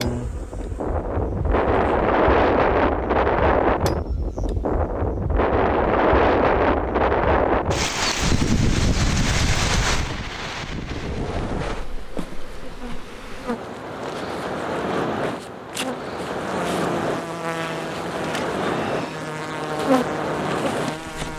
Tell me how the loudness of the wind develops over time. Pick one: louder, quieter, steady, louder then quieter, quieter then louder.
quieter.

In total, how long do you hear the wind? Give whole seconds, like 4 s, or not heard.
21 s.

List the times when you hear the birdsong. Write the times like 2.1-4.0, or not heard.
not heard.